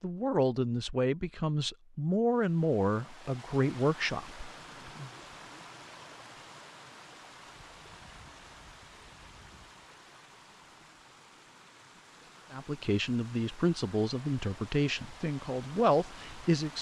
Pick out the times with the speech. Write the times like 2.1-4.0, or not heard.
0.0-5.1, 12.5-16.7.